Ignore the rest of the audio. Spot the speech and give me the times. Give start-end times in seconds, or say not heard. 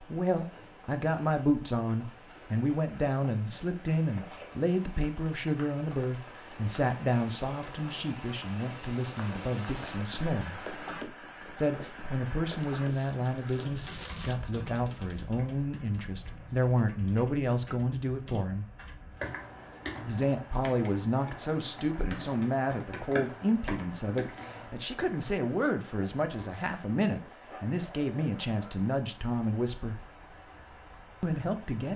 0.0-10.6, 11.6-18.6, 20.1-30.0, 31.2-31.9.